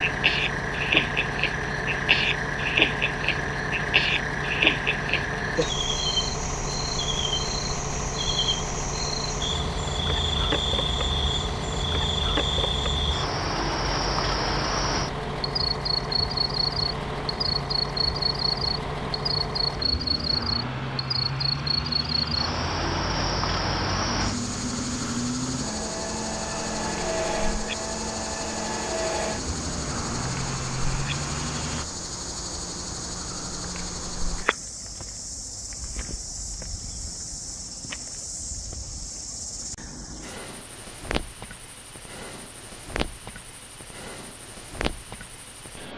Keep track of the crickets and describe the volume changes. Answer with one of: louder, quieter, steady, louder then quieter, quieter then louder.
quieter.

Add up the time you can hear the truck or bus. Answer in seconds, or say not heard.
32 s.